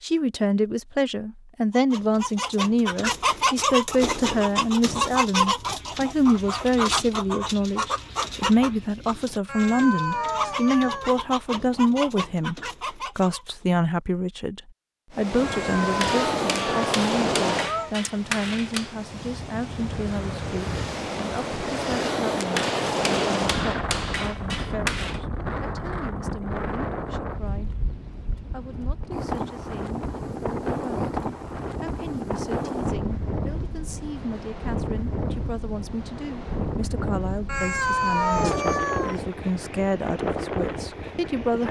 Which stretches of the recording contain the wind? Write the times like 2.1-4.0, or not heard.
15.1-41.6.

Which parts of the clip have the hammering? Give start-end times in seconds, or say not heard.
16.0-18.9, 22.6-25.2.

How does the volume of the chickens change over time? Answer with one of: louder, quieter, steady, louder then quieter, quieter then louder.
quieter.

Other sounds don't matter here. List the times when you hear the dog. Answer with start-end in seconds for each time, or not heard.
not heard.